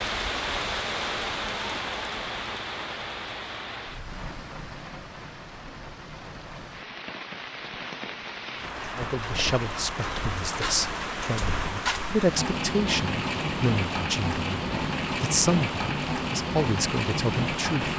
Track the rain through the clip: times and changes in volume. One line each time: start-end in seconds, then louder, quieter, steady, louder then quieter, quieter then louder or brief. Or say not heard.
0.0-17.9 quieter then louder.